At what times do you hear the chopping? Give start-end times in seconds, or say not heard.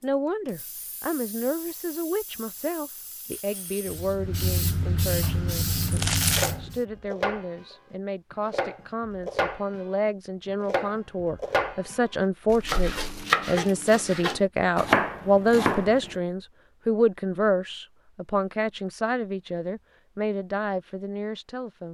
5.2-16.1.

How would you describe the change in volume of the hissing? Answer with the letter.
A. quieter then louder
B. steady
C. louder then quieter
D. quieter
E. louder
E.